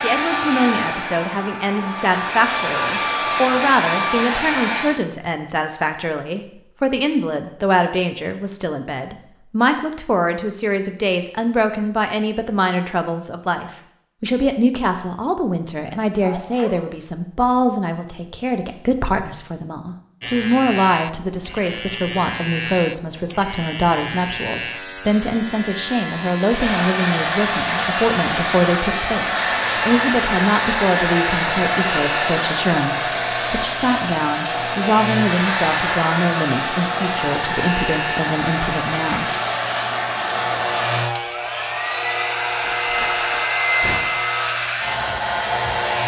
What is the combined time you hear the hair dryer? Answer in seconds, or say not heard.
25 s.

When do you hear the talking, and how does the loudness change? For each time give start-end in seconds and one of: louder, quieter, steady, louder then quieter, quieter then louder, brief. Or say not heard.
0.0-39.3 steady.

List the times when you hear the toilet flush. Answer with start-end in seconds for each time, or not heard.
not heard.